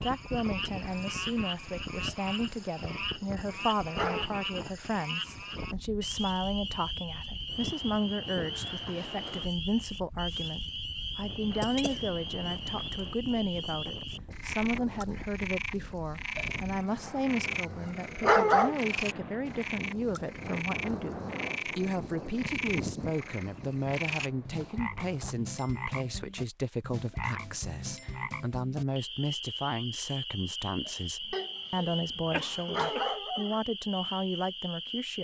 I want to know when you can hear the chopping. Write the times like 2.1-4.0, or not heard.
not heard.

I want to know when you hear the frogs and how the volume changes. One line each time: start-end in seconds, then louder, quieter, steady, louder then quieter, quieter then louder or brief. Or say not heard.
0.0-35.1 steady.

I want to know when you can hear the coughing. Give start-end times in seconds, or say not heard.
11.6-12.1, 31.3-33.2.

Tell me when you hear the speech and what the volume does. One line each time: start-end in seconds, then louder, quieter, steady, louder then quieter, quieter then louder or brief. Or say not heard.
0.0-35.1 steady.